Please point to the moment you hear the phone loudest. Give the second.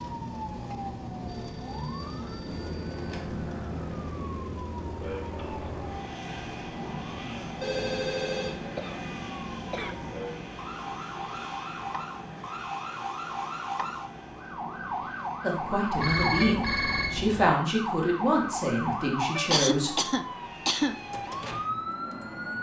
16 s.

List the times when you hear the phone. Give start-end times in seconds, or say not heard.
1.2-3.3, 7.6-8.8, 15.9-17.5.